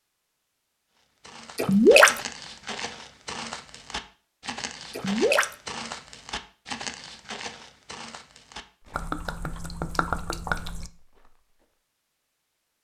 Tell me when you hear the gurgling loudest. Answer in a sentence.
The loudest moment of the gurgling is at 2 seconds.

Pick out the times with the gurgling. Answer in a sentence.
You can hear the gurgling from 1.6 to 2.2 s, from 4.9 to 5.5 s and from 8.9 to 10.9 s.